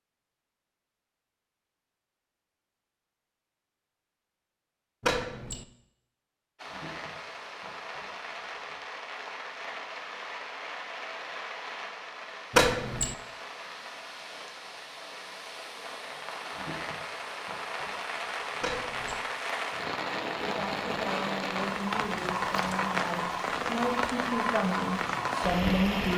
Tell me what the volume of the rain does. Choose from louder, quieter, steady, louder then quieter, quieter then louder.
louder.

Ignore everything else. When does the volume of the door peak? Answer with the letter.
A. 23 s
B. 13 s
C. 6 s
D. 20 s
B.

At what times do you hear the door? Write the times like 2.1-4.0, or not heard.
5.0-5.7, 12.5-13.2, 18.6-19.2.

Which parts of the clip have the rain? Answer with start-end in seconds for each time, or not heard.
6.5-26.1.